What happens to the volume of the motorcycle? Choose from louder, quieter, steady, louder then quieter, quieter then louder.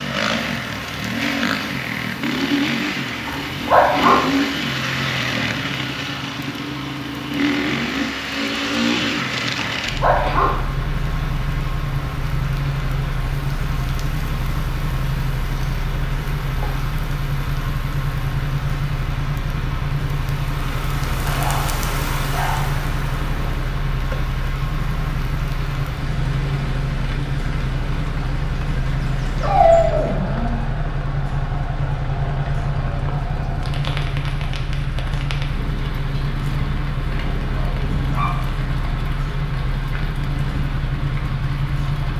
steady.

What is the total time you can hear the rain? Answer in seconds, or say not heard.
42 s.